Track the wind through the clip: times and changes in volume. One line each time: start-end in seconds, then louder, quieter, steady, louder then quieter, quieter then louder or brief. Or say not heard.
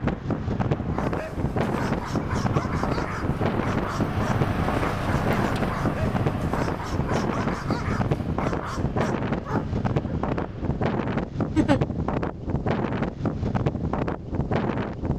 0.0-15.1 steady.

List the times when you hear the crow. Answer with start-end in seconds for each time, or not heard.
not heard.